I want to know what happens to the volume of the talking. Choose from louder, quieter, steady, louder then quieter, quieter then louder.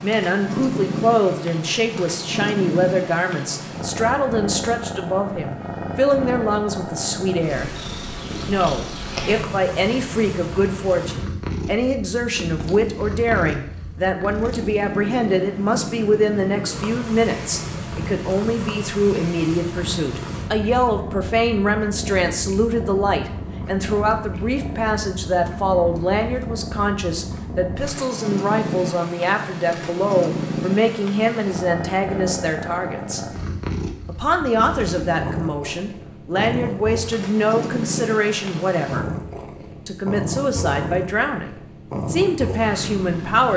steady.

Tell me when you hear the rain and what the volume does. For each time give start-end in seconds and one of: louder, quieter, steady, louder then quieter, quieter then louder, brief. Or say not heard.
not heard.